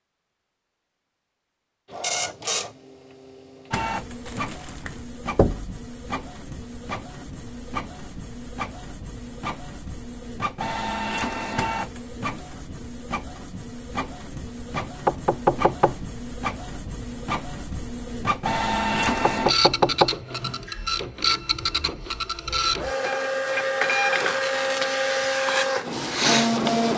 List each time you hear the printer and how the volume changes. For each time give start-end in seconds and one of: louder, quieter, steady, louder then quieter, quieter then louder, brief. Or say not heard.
1.9-26.9 louder.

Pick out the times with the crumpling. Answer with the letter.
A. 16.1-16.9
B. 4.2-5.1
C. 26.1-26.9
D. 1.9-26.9
B.